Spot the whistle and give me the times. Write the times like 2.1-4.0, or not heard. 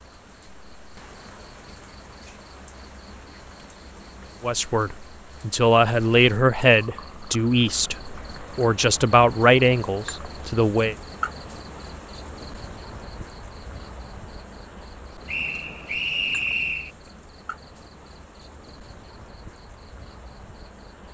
15.2-16.9.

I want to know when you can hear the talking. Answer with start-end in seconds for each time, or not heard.
4.4-10.9.